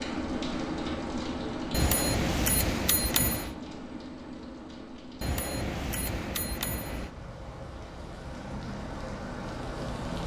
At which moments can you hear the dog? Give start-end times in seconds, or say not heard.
not heard.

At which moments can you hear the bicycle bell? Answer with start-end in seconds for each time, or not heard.
1.7-3.5, 5.2-7.1.